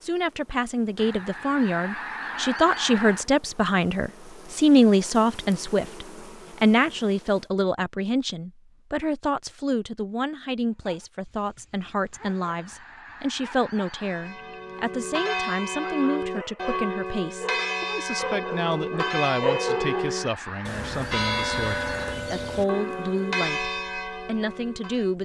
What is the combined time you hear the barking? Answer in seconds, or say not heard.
9 s.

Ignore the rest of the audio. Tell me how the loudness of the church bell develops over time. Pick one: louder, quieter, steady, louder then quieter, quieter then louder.
steady.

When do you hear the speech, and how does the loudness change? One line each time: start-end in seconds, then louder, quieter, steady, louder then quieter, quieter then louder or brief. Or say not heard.
0.0-25.2 quieter.